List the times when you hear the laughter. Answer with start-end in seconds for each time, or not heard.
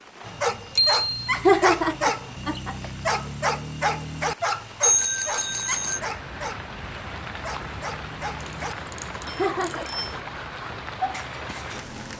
1.3-2.8, 9.2-9.8.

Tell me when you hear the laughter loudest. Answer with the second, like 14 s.
2 s.